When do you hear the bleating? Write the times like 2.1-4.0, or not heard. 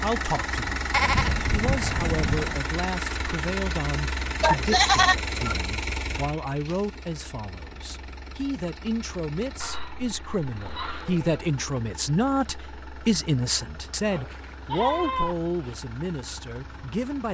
0.9-2.6, 4.4-5.5, 9.6-11.4, 14.1-15.8.